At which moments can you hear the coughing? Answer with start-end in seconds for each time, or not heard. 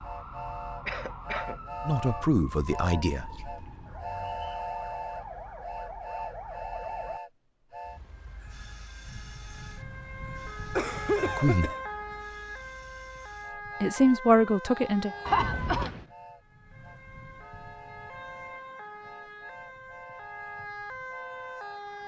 0.8-1.6, 10.8-11.8, 15.2-16.1.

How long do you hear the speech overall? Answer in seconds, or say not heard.
3 s.